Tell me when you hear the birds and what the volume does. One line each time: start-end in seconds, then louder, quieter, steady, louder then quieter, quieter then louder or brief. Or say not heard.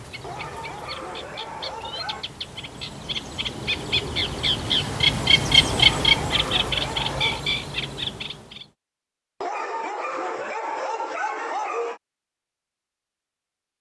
0.0-8.7 louder then quieter.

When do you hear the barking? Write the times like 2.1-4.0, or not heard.
0.2-2.2, 5.7-7.5, 9.4-12.0.